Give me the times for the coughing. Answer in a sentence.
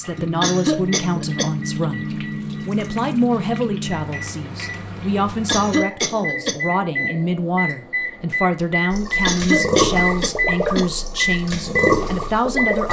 The coughing can be heard from 0.4 to 1.5 s, from 5.5 to 6.6 s and from 9.2 to 10.8 s.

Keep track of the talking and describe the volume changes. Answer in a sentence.
The loudness of the talking stays about the same.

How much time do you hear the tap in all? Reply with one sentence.
The tap can be heard for 9 seconds in total.